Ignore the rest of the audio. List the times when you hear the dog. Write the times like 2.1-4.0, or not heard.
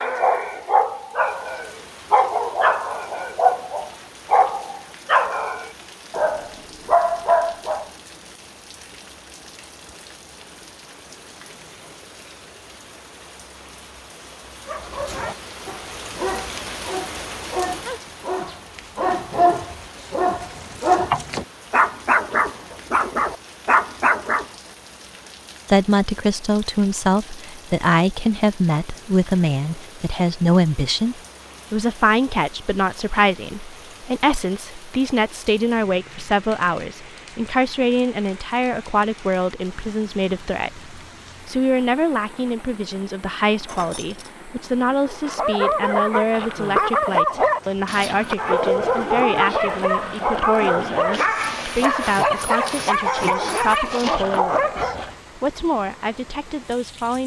0.0-7.9, 14.7-24.4, 45.0-55.1.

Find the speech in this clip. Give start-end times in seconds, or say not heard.
25.6-57.2.